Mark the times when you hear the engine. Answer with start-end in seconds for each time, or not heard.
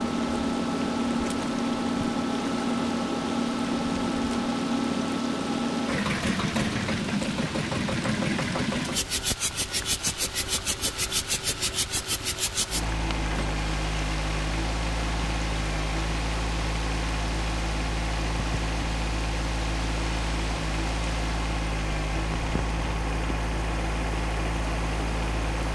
0.0-25.7.